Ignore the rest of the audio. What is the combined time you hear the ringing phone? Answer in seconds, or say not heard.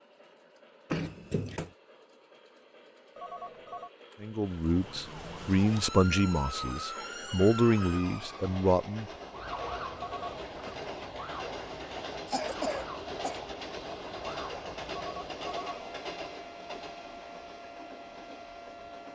3 s.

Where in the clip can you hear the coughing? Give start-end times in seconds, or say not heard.
0.9-1.7, 12.2-13.4.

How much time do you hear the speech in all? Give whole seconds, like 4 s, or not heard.
5 s.